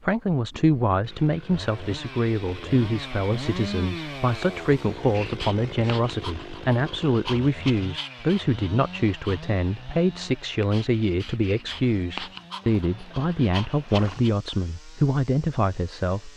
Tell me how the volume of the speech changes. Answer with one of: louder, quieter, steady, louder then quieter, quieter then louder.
steady.